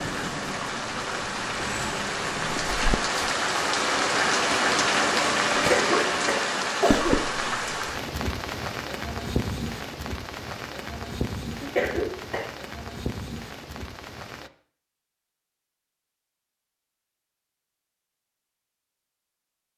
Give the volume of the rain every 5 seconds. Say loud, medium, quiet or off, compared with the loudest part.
loud, loud, medium, off.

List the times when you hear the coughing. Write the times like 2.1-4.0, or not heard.
5.5-7.2, 11.6-12.4.